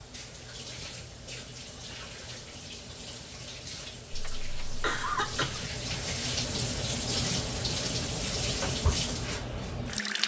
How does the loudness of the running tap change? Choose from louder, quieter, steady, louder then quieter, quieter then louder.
louder.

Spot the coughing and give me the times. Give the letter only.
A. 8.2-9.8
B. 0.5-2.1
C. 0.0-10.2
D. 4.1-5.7
D.